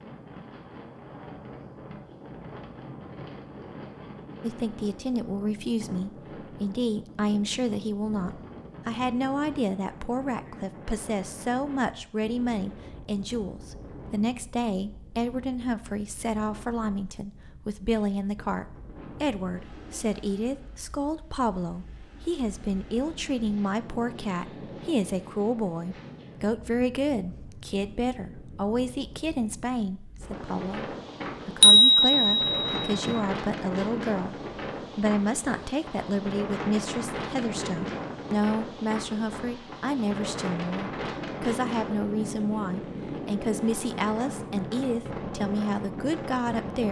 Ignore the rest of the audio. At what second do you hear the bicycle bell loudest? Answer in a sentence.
The volume of the bicycle bell peaks at 32 seconds.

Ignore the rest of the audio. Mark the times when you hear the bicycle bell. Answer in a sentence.
The bicycle bell can be heard from 31.6 to 33.2 s.